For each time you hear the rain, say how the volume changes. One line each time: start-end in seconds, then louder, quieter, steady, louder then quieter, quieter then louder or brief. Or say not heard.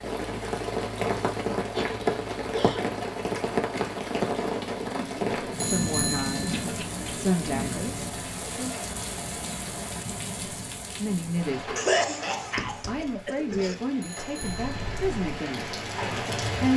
0.0-16.7 quieter.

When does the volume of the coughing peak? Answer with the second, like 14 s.
12 s.